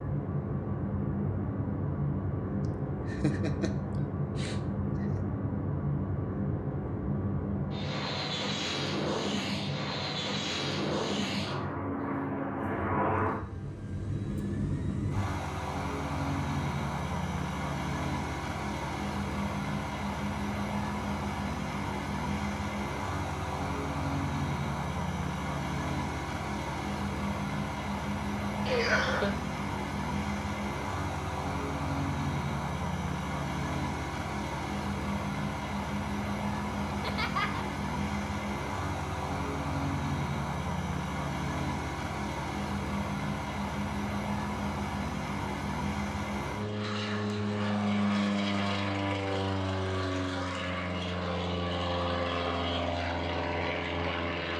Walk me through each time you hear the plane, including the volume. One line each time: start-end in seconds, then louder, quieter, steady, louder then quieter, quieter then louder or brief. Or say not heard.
0.0-54.5 steady.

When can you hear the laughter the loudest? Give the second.
29 s.